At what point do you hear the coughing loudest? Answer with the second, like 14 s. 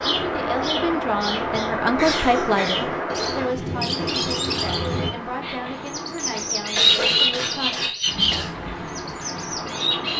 7 s.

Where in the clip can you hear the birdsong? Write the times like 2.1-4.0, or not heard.
0.0-10.1.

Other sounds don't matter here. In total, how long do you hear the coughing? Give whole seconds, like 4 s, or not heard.
3 s.